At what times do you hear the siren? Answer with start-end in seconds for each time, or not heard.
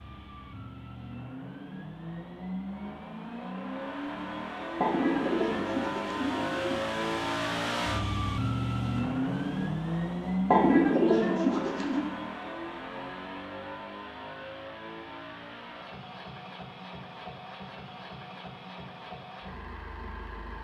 not heard.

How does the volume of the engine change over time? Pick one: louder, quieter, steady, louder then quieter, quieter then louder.
louder then quieter.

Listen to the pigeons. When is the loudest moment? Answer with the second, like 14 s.
11 s.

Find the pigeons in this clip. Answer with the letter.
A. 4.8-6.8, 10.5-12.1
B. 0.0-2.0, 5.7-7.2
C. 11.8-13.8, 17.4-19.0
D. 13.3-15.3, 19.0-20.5
A.